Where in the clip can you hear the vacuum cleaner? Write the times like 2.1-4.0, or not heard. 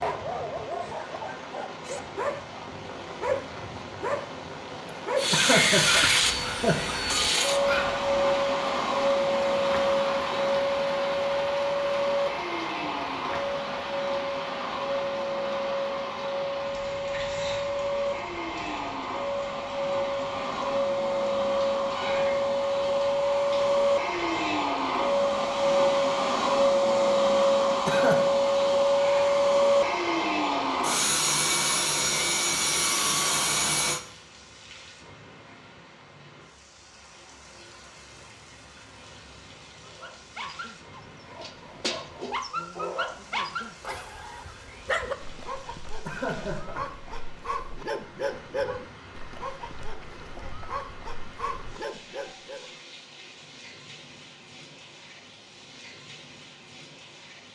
5.2-34.0.